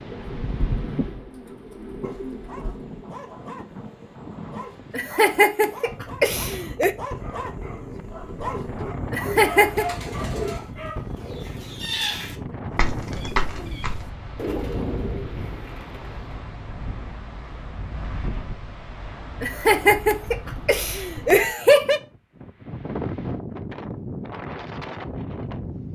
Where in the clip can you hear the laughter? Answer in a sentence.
You can hear the laughter from 4.9 to 7.0 s, from 9.1 to 9.8 s and from 19.4 to 22.0 s.